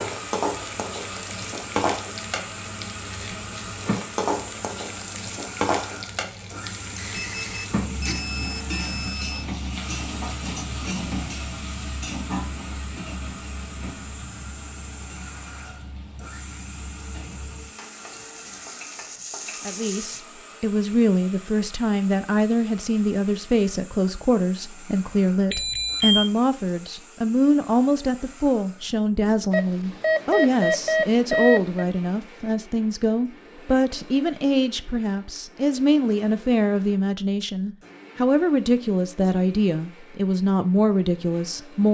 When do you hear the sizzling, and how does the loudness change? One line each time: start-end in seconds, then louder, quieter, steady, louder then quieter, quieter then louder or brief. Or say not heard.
0.0-20.2 quieter.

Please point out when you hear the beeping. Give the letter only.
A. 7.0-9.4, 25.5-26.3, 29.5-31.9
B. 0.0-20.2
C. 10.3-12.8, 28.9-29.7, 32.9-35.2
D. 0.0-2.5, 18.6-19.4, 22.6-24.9
A.